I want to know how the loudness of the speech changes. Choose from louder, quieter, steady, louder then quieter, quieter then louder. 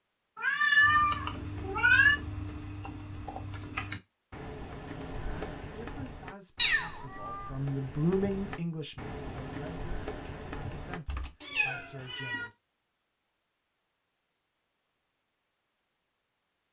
louder then quieter.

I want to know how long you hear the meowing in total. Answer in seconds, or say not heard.
4 s.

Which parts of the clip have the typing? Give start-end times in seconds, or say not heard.
0.8-11.3.